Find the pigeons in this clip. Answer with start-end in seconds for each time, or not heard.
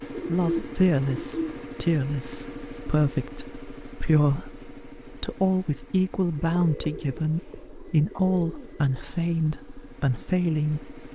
0.1-1.6, 6.3-9.1.